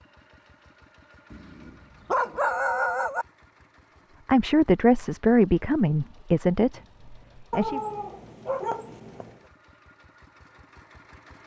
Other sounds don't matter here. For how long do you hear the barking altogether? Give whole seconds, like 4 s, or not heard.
4 s.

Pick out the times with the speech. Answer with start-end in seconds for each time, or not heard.
4.2-7.8.